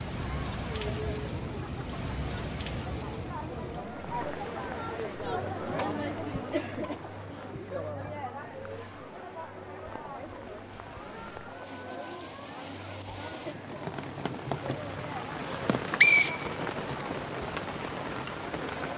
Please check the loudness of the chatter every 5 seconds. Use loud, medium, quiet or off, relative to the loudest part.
loud, loud, medium, medium.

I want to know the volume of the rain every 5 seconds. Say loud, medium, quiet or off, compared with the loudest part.
loud, quiet, medium, loud.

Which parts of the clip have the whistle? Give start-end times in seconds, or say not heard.
15.4-17.1.